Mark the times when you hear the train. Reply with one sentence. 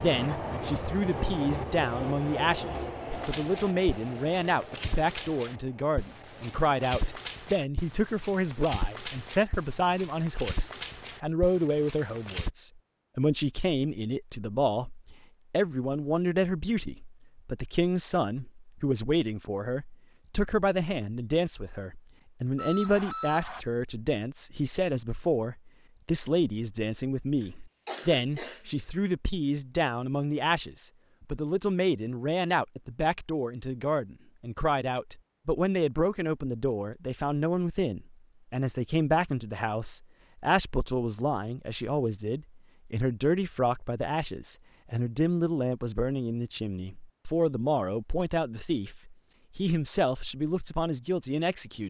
The train can be heard from 0.0 to 7.3 s.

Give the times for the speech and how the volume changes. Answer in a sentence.
You can hear the speech from 0.0 to 51.8 s, at a steady volume.